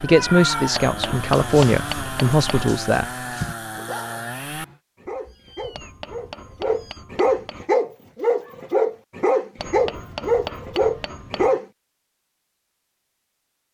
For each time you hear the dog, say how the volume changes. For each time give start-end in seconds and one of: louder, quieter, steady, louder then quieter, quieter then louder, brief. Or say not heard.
1.1-11.7 louder.